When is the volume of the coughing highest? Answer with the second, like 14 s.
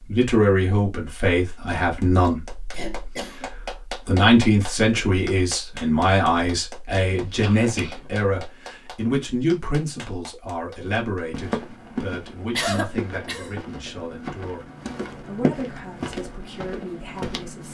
13 s.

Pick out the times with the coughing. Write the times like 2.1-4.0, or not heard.
2.7-3.5, 7.0-8.2, 12.6-13.5.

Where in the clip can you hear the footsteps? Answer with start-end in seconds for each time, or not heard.
11.3-17.6.